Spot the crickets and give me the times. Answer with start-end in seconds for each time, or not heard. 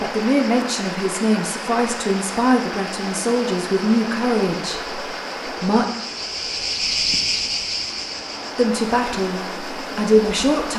0.0-10.5.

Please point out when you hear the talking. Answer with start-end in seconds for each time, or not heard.
0.0-5.8, 8.6-10.7.